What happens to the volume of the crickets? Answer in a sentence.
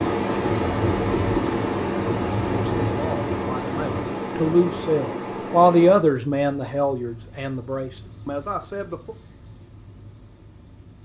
The volume of the crickets goes down.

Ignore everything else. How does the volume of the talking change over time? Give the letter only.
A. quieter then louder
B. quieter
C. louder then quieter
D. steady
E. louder
C.